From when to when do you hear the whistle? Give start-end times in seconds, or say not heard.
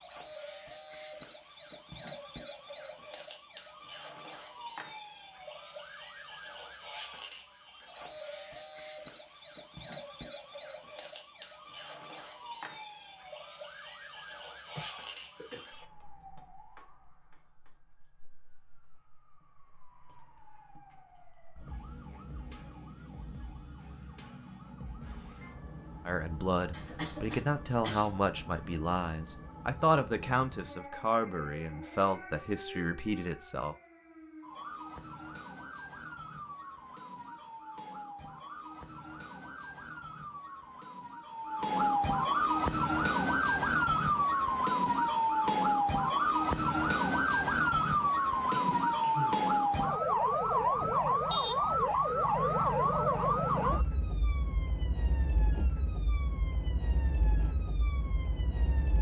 not heard.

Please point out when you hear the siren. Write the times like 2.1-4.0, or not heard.
0.0-58.9.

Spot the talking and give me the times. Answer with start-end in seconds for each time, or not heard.
26.1-33.8.